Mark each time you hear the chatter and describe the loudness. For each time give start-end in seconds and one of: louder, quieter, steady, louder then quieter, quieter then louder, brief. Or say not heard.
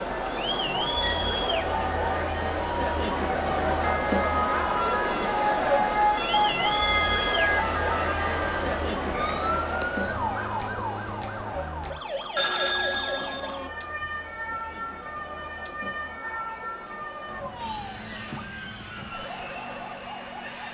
0.0-20.6 quieter.